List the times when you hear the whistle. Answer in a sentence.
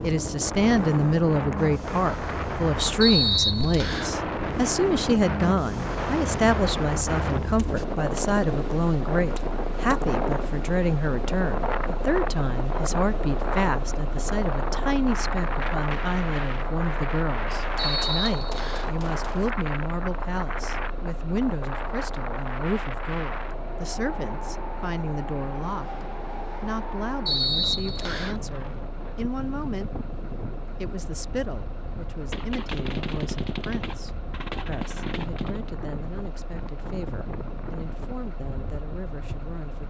The whistle can be heard from 3.0 to 4.2 s, from 17.8 to 18.9 s and from 27.2 to 28.4 s.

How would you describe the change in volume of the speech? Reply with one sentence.
The volume of the speech goes down.